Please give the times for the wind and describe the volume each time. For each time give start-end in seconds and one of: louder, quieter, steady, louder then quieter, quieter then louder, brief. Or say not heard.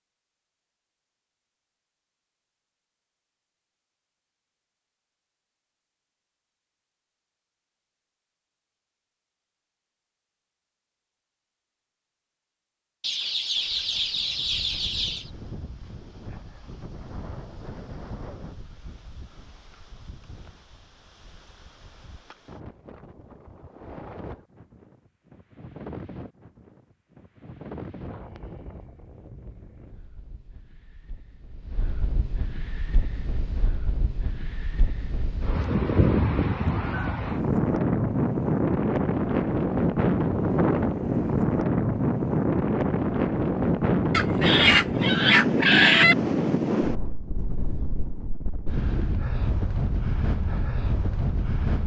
13.6-51.8 louder.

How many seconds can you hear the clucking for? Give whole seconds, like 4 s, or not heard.
4 s.